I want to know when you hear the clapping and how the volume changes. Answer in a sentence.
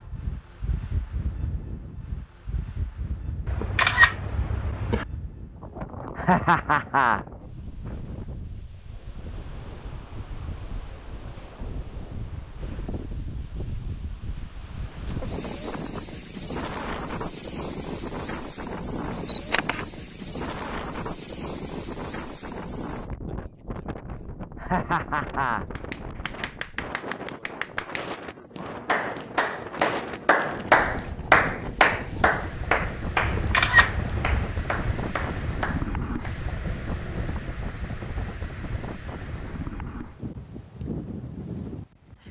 You can hear the clapping from 25.8 to 36.4 s, getting louder then quieter.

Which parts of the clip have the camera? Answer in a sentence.
You can hear the camera from 3.5 to 5.0 s, from 19.2 to 19.9 s and from 33.2 to 34.6 s.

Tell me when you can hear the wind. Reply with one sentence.
You can hear the wind from 0.0 to 42.2 s.